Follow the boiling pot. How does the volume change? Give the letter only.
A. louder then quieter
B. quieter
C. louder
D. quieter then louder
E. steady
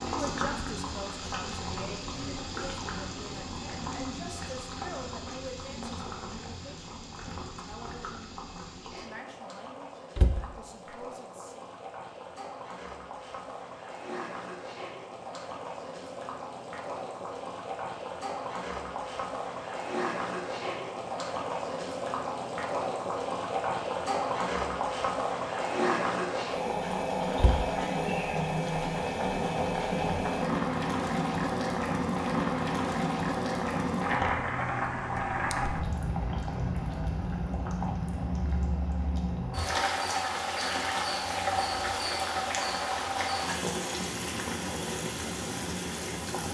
C.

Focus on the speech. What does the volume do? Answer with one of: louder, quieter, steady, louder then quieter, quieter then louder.
quieter.